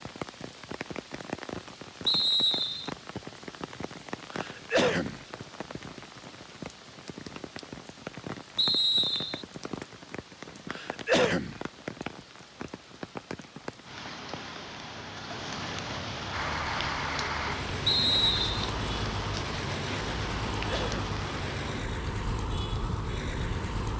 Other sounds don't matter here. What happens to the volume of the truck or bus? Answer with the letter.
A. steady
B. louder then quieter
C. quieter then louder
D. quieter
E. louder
A.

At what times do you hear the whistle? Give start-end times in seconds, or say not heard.
2.0-2.9, 8.6-9.4, 17.9-18.7.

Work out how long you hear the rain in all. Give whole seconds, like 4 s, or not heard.
24 s.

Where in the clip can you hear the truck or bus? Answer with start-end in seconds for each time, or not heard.
16.3-23.9.